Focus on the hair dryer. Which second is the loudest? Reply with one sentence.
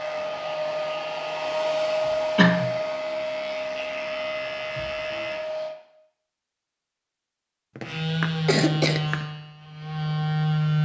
The loudest moment of the hair dryer is at 2 seconds.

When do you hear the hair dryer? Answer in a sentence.
The hair dryer can be heard from 0.0 to 5.8 s.